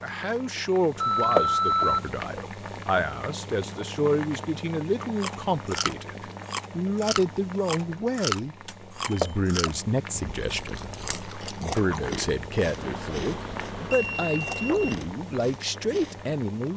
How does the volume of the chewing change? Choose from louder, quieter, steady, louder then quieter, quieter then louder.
quieter.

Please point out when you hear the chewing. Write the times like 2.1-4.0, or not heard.
5.2-16.4.